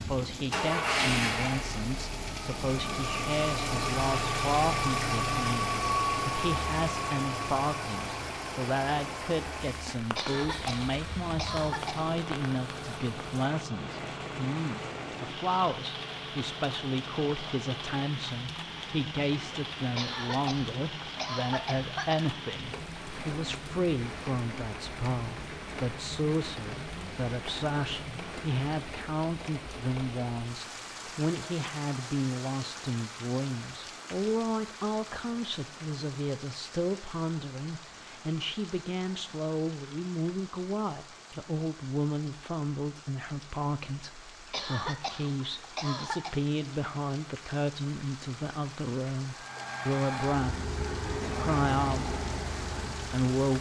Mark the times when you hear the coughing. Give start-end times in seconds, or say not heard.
10.2-12.1, 19.9-22.3, 44.5-46.4.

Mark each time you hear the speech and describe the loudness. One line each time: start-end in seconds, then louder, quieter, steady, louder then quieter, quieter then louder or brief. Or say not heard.
0.0-50.6 steady
51.2-52.1 brief
52.9-53.5 brief.